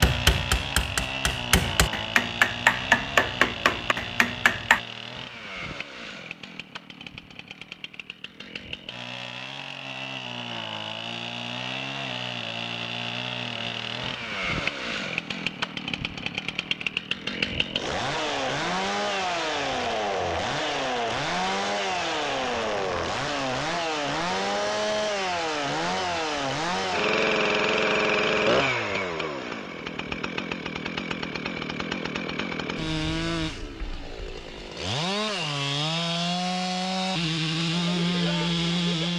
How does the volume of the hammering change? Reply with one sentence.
The volume of the hammering goes up, then down.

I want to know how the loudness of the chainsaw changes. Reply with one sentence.
The loudness of the chainsaw goes up.